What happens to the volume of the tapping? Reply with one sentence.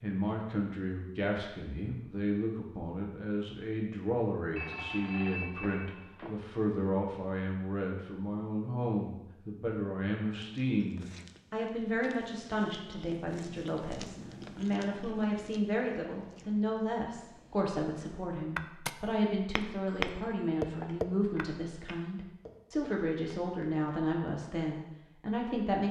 The volume of the tapping goes up, then down.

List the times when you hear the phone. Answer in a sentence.
You can hear the phone from 4.5 to 6.4 s and from 19.9 to 21.4 s.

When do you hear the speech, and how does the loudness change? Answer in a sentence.
You can hear the speech from 0.0 to 25.8 s, at a steady volume.